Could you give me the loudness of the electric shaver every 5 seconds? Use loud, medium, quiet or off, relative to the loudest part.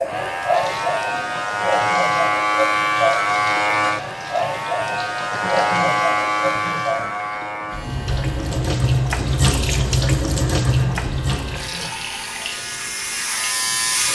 loud, loud, medium.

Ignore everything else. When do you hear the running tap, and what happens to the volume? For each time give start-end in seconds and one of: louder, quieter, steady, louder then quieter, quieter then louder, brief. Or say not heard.
0.0-14.1 louder then quieter.